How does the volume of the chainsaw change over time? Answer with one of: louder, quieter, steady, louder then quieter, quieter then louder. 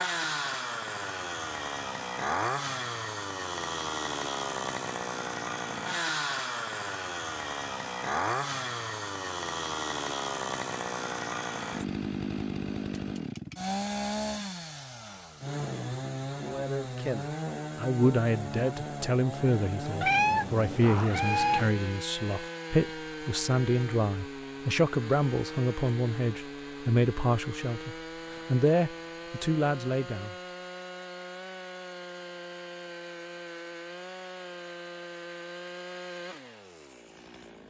quieter.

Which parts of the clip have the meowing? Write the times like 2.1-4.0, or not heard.
20.0-21.7.